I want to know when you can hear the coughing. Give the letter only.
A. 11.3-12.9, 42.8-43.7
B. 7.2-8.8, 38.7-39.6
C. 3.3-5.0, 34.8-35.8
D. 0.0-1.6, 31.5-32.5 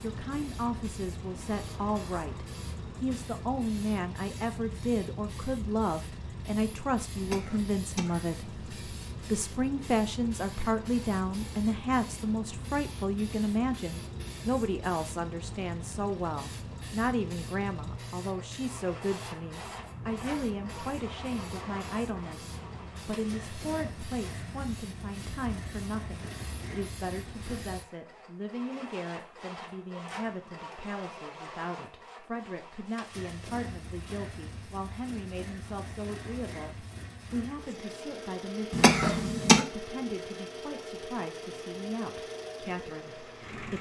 B.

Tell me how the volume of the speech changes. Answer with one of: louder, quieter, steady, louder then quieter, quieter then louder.
quieter.